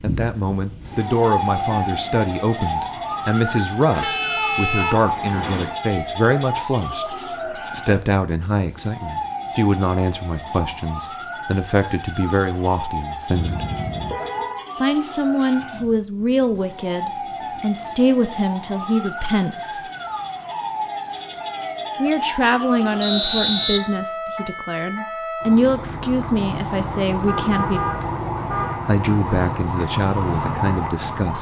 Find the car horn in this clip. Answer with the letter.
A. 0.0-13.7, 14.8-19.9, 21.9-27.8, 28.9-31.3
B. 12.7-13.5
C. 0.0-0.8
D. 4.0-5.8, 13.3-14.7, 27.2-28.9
D.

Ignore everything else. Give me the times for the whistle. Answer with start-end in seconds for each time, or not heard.
23.0-23.8.